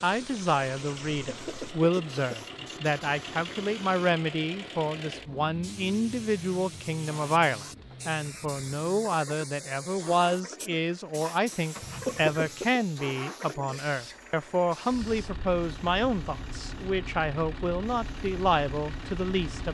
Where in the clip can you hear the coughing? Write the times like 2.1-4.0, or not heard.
1.2-2.7, 11.8-12.8.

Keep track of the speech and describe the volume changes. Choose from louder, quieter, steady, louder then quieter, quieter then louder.
steady.